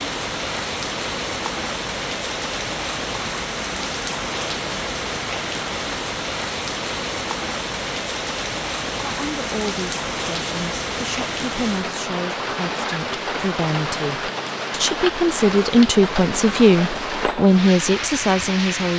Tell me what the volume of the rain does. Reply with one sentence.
The volume of the rain stays about the same.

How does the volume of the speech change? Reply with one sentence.
The volume of the speech goes up.